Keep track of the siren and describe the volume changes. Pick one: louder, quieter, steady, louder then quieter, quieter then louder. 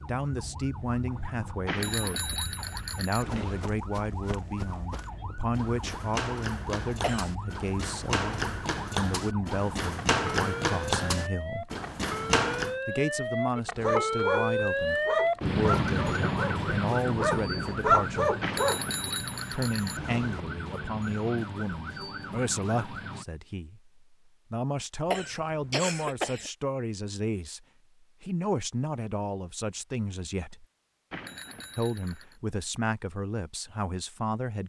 louder then quieter.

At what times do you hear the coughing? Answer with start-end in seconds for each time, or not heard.
7.0-7.4, 25.1-26.5.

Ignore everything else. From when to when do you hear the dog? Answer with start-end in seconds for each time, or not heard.
13.8-19.0.